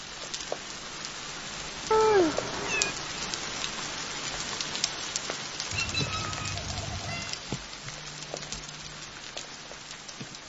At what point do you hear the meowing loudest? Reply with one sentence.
The loudest moment of the meowing is at 2 seconds.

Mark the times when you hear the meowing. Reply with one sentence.
You can hear the meowing from 1.9 to 3.0 s and from 5.7 to 7.3 s.